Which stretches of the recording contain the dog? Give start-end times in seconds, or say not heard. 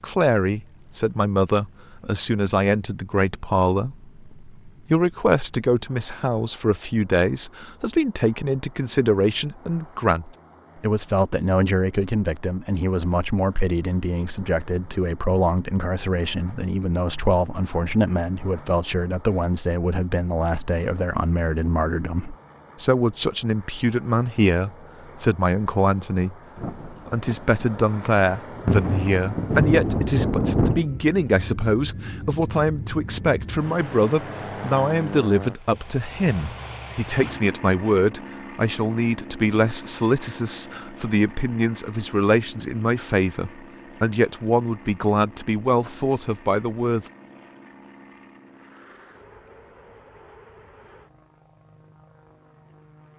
not heard.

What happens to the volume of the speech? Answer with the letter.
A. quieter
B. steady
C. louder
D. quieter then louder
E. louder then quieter
B.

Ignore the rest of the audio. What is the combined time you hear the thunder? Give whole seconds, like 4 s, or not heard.
4 s.